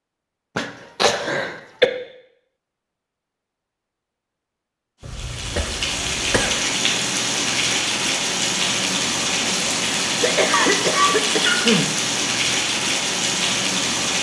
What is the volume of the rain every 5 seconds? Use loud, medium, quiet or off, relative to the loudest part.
off, loud, loud.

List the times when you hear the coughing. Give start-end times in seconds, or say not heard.
0.6-1.9, 5.0-6.5, 10.2-11.9.